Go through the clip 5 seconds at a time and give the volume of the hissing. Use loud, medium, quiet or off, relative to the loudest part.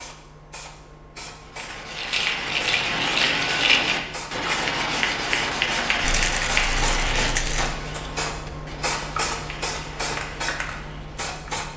medium, loud, loud.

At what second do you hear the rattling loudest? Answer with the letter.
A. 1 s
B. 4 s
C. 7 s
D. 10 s
B.